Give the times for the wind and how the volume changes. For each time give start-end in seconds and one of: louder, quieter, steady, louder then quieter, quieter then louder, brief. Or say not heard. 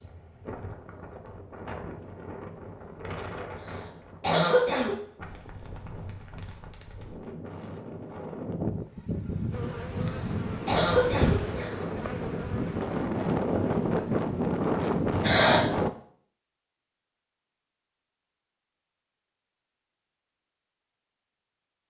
0.0-15.9 louder.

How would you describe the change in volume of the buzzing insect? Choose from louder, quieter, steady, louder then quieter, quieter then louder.
louder then quieter.